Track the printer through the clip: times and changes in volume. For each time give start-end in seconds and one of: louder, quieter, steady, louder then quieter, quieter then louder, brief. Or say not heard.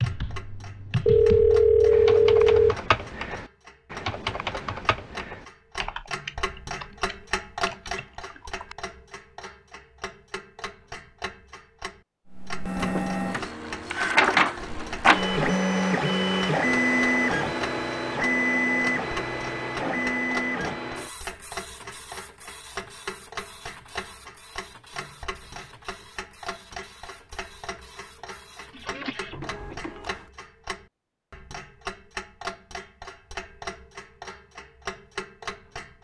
12.2-30.3 quieter then louder.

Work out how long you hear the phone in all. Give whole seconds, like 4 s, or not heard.
2 s.